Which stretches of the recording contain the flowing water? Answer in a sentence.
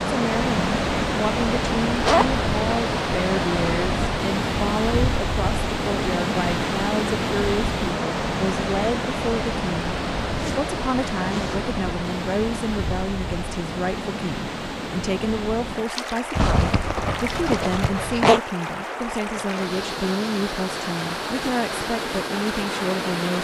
You can hear the flowing water from 0.0 to 23.3 s.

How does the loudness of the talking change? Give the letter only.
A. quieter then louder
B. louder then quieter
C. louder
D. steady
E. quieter
D.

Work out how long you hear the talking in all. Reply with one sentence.
You can hear the talking for 23 seconds altogether.